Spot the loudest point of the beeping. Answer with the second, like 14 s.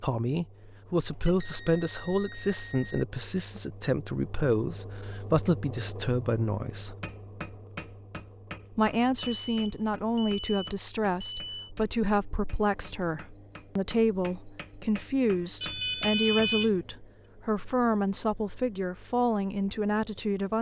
16 s.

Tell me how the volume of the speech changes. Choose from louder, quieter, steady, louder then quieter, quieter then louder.
steady.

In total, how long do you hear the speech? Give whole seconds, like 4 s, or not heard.
19 s.